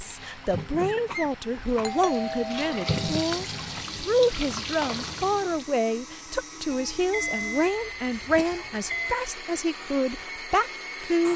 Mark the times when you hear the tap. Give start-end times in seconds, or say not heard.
0.0-5.7.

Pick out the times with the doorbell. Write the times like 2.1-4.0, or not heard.
1.8-3.2, 6.7-9.2.